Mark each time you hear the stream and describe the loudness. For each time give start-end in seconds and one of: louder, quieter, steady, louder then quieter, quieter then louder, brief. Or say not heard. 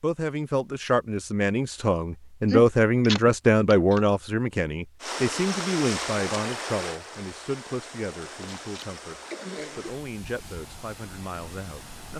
5.0-12.1 quieter.